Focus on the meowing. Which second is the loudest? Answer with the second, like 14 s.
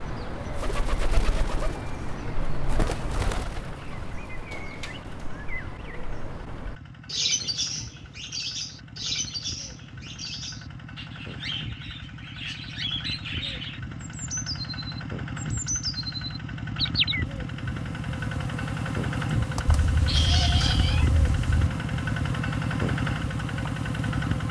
20 s.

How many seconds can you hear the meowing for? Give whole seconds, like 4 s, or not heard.
2 s.